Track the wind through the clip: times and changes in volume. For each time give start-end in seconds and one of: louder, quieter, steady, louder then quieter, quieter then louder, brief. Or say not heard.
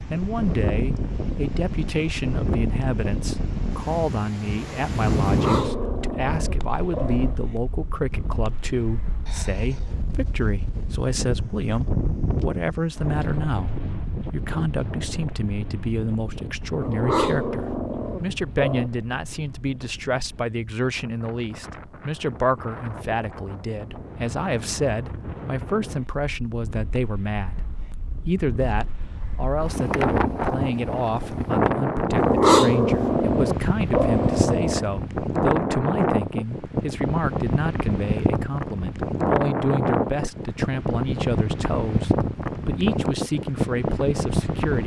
0.0-44.8 quieter then louder.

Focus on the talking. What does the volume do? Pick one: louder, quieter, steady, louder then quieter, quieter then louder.
steady.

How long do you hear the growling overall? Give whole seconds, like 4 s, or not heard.
7 s.